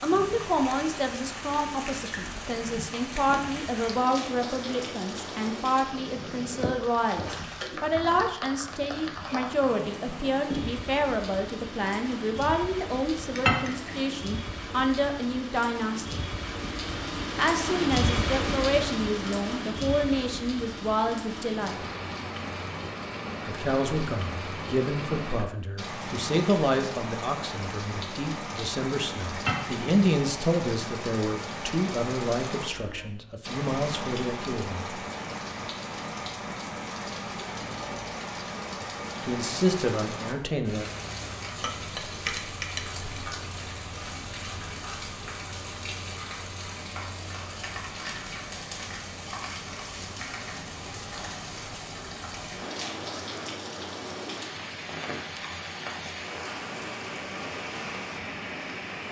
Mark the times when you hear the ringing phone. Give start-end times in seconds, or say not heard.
not heard.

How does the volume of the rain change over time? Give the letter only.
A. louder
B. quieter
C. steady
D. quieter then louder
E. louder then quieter
C.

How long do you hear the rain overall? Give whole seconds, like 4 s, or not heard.
59 s.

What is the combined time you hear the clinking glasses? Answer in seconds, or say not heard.
3 s.